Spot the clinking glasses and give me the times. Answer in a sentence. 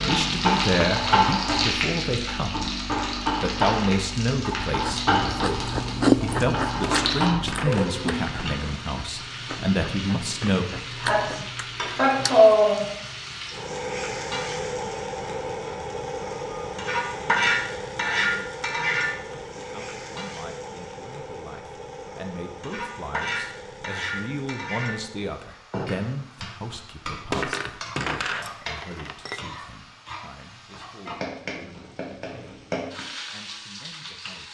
You can hear the clinking glasses from 6.7 to 7.9 s and from 27.1 to 29.4 s.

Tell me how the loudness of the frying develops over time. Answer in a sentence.
The loudness of the frying goes down.